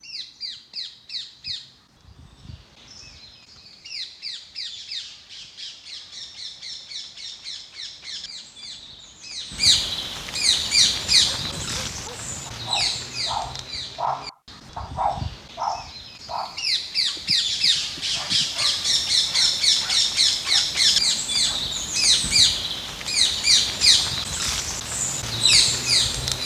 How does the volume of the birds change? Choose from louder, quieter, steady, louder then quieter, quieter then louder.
louder.